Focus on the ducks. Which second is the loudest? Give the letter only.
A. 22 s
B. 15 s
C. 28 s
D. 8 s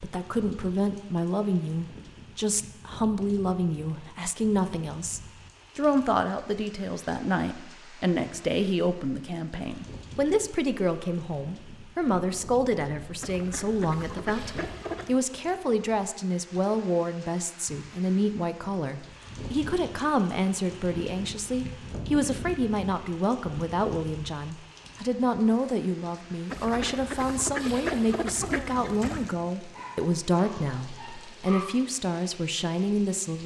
C.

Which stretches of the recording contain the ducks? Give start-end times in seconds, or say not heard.
13.2-15.2, 26.5-29.4.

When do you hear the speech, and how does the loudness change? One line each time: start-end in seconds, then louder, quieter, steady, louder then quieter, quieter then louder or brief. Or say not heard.
0.0-33.4 steady.